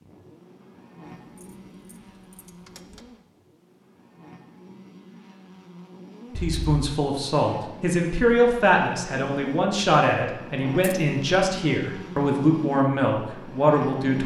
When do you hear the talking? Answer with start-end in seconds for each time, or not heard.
6.3-14.2.